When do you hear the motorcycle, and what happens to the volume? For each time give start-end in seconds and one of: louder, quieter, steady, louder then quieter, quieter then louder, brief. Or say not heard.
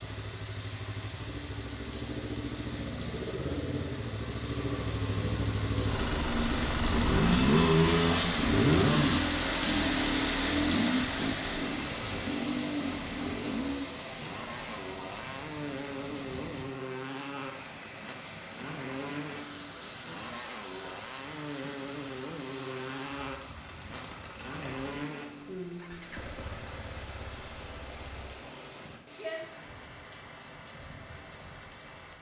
0.0-28.4 louder then quieter.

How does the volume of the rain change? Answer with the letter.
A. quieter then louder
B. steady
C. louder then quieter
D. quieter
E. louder
C.